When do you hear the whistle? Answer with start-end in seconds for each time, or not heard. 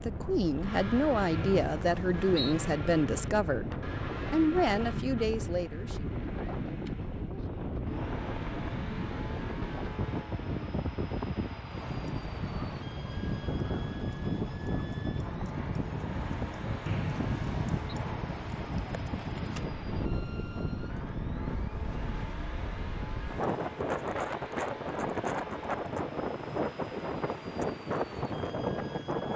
1.3-2.5, 16.9-17.8.